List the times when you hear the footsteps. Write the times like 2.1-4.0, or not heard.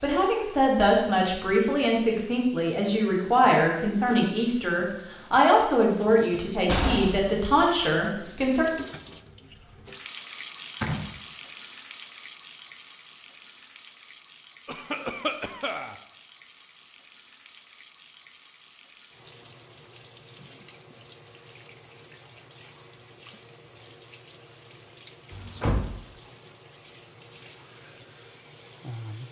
not heard.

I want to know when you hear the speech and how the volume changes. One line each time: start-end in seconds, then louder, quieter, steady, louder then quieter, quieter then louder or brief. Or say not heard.
0.0-8.7 steady.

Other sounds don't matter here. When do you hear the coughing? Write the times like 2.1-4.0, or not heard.
14.7-15.9.